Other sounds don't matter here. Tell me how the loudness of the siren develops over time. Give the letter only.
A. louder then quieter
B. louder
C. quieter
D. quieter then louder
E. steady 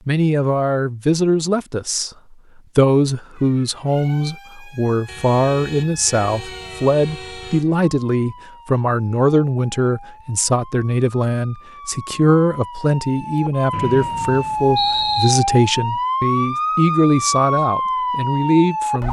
B.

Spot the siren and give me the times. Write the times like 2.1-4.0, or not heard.
3.3-19.0.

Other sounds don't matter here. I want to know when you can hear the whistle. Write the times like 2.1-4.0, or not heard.
13.7-15.3.